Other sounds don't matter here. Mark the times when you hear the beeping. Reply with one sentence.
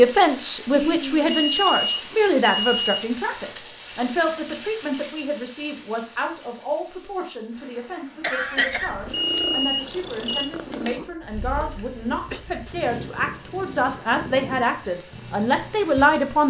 The beeping can be heard from 1.3 to 3.0 s and from 9.1 to 10.4 s.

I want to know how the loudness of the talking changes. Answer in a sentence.
The volume of the talking goes down, then up.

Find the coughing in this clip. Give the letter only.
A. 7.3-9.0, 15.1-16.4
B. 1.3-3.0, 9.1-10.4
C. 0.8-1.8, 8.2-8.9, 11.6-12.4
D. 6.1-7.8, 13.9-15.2
C.